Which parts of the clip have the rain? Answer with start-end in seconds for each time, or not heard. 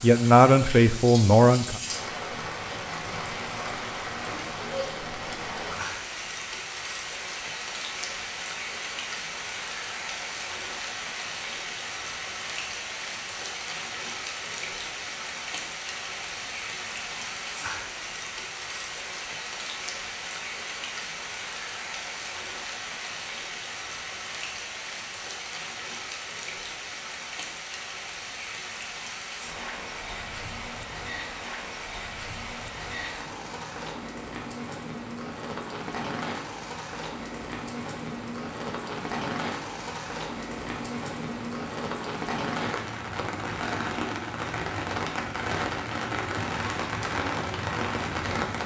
0.0-48.6.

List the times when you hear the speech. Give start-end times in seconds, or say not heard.
0.0-1.8.